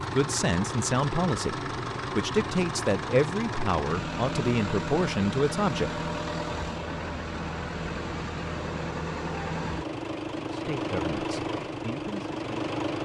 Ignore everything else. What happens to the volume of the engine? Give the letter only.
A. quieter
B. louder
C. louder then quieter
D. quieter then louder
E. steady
E.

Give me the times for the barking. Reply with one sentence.
The barking can't be heard in this clip.